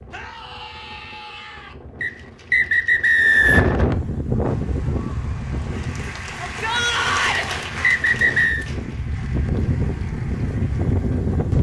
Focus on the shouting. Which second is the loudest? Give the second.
7 s.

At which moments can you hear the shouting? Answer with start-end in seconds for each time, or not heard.
0.1-1.8, 6.3-7.5.